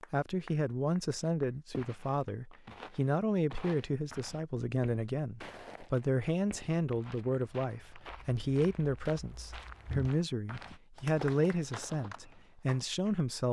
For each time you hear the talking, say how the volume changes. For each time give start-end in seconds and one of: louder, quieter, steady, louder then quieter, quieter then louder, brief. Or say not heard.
0.1-13.4 steady.